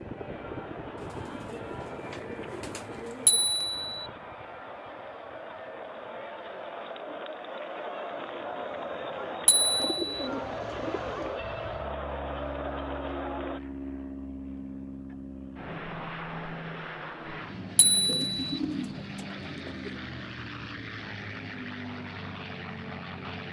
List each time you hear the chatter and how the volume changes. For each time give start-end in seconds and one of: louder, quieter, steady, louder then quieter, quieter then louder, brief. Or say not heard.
0.2-13.6 louder.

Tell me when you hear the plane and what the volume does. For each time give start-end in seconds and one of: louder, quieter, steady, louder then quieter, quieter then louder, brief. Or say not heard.
0.0-23.4 quieter then louder.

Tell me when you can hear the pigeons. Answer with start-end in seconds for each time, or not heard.
0.9-3.5, 9.8-11.4, 18.1-20.0.